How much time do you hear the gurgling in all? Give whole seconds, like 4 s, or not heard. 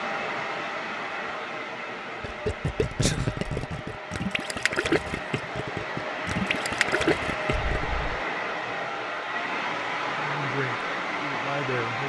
6 s.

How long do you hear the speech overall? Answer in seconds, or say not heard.
2 s.